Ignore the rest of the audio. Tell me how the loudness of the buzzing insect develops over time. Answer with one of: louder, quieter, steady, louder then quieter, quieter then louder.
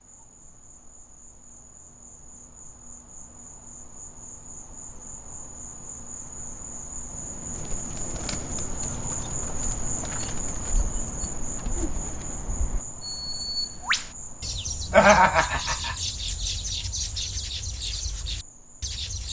louder then quieter.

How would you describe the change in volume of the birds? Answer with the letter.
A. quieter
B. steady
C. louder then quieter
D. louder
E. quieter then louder
D.